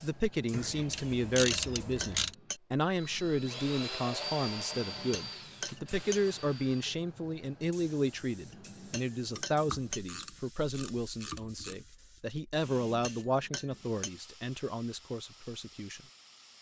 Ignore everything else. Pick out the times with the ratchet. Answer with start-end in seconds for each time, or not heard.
0.5-2.4, 9.3-11.8.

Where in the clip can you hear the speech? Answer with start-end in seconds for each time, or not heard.
0.0-16.0.